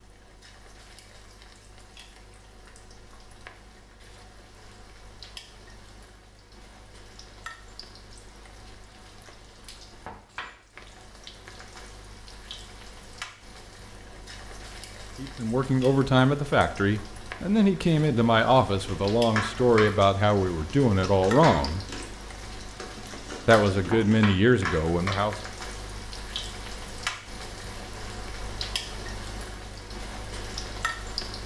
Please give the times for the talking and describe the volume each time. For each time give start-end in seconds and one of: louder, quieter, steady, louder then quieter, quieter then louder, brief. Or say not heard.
15.2-21.9 steady
23.4-25.4 brief.